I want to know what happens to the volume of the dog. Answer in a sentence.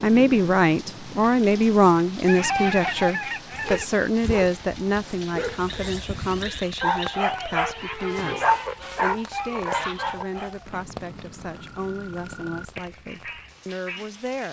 The volume of the dog goes up, then down.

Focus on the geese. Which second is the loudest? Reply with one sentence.
The loudest moment of the geese is at 3 seconds.